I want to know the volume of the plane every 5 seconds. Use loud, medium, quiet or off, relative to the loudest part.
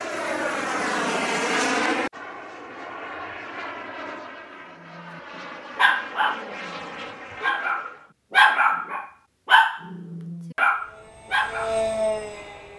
loud, medium, loud.